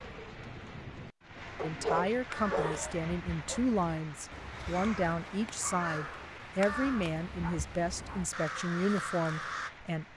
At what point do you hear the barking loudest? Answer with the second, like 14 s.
2 s.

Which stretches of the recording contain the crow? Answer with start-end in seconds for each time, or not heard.
2.1-9.7.